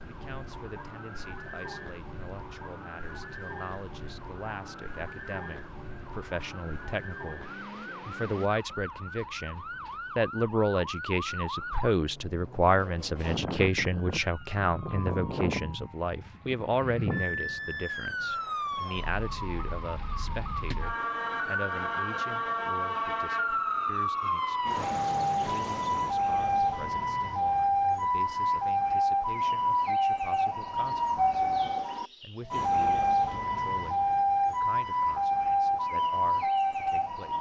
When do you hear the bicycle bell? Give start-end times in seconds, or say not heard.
not heard.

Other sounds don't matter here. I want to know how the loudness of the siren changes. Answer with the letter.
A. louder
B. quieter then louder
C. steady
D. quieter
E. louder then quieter
A.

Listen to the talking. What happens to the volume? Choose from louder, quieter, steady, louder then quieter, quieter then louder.
louder then quieter.